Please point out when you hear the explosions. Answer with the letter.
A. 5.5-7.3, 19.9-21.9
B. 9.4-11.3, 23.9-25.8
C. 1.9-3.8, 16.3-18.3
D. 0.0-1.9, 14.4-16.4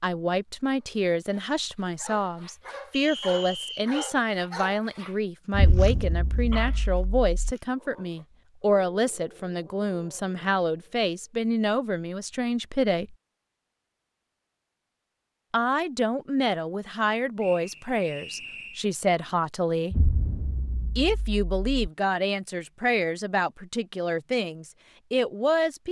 A.